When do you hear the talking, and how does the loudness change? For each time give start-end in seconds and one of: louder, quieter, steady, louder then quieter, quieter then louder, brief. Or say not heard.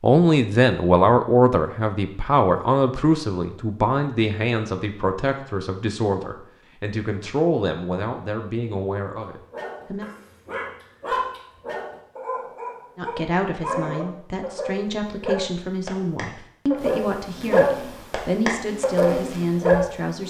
0.0-10.1 quieter
12.9-20.2 steady.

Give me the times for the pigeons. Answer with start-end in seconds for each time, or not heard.
not heard.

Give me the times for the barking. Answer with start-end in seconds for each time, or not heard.
9.5-19.9.